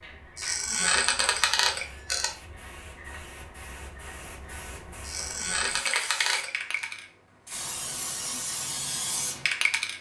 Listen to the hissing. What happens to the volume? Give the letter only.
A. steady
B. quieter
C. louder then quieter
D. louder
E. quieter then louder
D.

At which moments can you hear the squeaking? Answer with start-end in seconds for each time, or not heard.
0.3-2.3, 5.0-6.8.